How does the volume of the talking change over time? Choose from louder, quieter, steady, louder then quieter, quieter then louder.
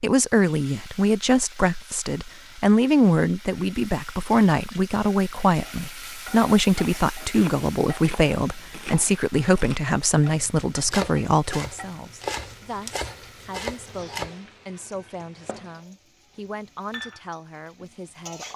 quieter.